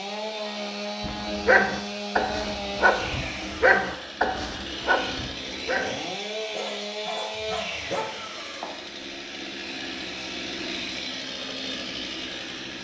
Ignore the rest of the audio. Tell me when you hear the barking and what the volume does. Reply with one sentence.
The barking can be heard from 1.0 to 8.2 s, getting quieter.